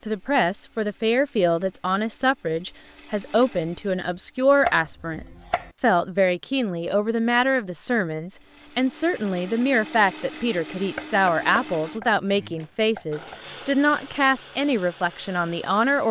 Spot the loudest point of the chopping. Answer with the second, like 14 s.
5 s.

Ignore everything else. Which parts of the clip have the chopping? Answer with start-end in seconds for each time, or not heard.
4.7-5.8, 10.9-13.4.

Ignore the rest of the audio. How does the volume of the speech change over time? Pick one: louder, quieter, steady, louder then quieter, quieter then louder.
steady.